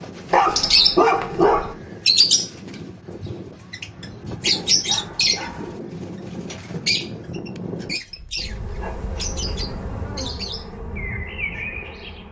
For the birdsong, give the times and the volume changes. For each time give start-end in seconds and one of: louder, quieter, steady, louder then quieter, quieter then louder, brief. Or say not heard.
0.0-12.2 quieter.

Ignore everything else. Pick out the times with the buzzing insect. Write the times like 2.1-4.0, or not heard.
8.3-12.2.